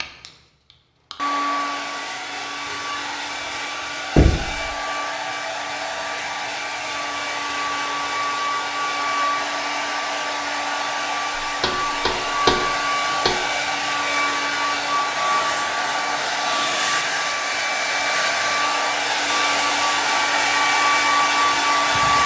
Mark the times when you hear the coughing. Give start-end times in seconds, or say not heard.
not heard.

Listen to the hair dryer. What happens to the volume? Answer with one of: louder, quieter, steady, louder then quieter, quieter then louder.
louder.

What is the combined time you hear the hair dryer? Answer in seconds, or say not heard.
22 s.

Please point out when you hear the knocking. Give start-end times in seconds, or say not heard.
4.2-4.7, 11.6-13.3.